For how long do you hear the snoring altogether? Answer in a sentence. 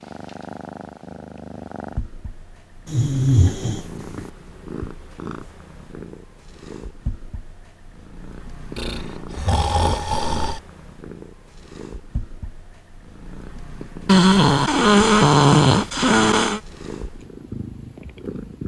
The snoring can be heard for 6 seconds in total.